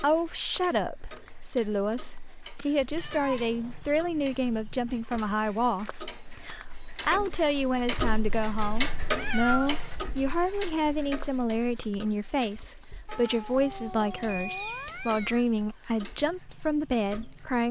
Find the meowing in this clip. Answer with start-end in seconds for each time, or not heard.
3.0-3.8, 9.2-9.9, 13.1-15.4.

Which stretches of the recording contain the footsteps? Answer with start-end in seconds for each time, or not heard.
not heard.